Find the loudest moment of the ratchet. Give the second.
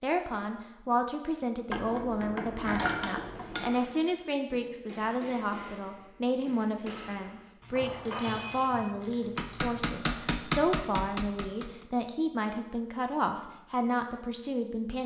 3 s.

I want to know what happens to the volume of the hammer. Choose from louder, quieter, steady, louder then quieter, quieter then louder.
louder.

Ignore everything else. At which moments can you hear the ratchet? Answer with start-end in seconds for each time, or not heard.
1.7-3.7, 7.6-10.3.